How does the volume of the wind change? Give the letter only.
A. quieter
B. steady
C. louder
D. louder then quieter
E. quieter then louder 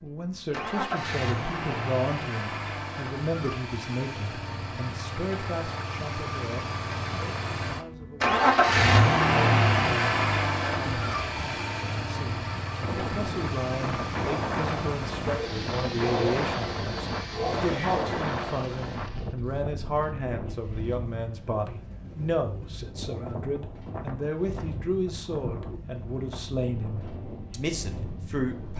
A.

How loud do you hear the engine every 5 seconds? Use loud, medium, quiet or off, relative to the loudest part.
medium, loud, medium, medium, quiet, quiet.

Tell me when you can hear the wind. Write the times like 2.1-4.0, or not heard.
12.8-28.7.